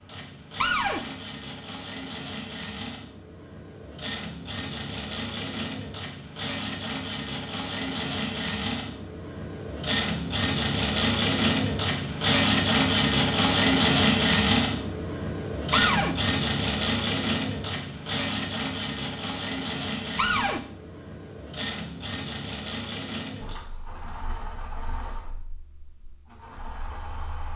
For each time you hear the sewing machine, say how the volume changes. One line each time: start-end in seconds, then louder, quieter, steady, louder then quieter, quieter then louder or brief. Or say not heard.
0.0-27.5 louder then quieter.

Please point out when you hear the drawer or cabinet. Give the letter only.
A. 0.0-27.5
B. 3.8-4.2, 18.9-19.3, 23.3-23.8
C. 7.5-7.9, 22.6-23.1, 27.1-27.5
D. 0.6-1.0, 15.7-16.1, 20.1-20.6
D.